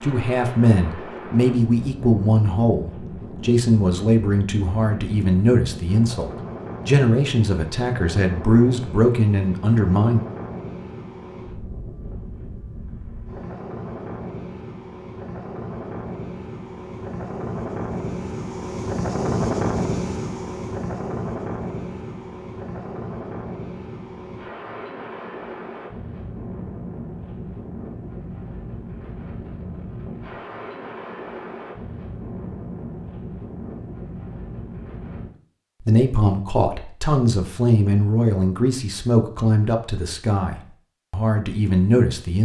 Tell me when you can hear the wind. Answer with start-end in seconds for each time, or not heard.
0.0-35.3.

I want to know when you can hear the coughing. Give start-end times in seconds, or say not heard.
not heard.